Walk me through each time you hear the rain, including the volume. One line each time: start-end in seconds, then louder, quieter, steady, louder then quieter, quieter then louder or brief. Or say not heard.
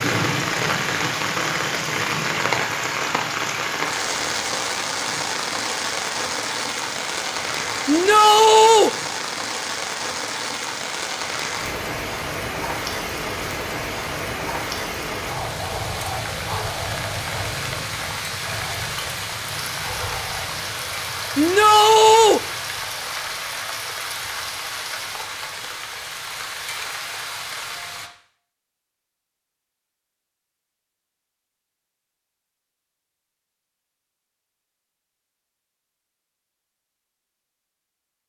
0.0-28.1 quieter.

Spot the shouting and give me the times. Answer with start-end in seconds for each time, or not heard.
7.8-8.9, 21.4-22.4.